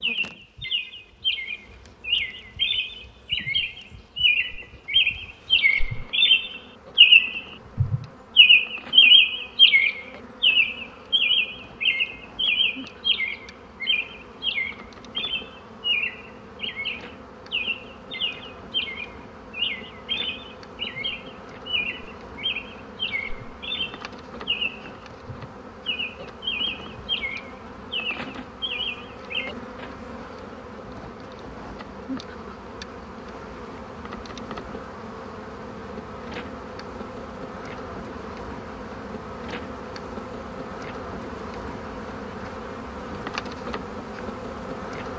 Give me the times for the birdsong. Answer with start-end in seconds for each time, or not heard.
0.0-29.6.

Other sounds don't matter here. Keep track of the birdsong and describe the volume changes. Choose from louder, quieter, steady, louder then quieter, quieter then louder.
louder then quieter.